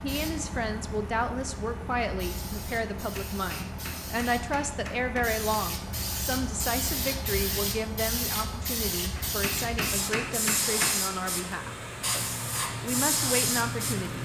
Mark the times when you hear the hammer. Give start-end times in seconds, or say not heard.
3.0-5.3, 9.2-11.0.